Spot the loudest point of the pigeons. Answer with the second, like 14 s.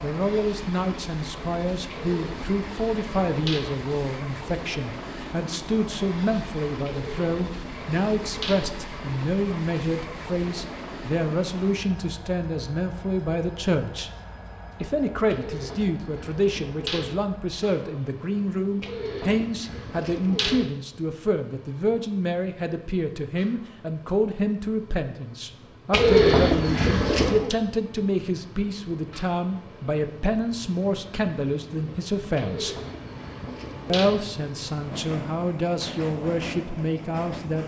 26 s.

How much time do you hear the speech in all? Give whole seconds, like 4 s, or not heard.
36 s.